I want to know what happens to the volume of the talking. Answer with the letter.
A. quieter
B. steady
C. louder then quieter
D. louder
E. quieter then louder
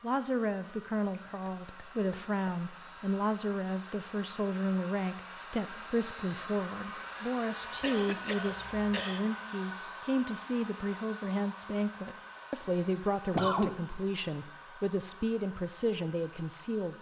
B.